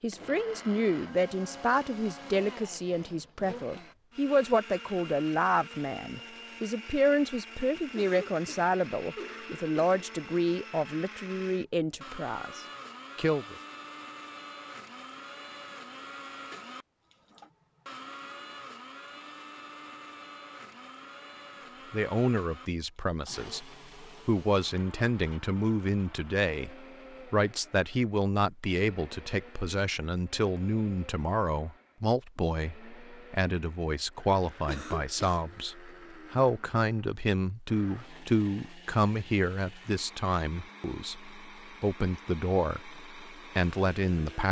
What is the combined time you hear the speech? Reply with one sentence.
You can hear the speech for 36 seconds altogether.